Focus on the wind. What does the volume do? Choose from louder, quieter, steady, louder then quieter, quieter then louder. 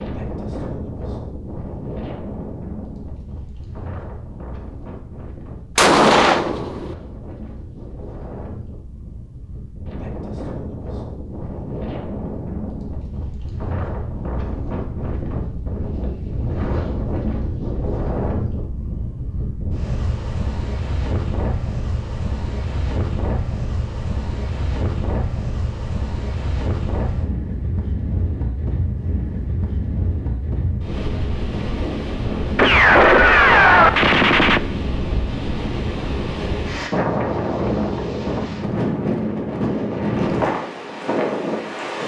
louder.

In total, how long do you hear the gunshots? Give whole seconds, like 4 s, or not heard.
3 s.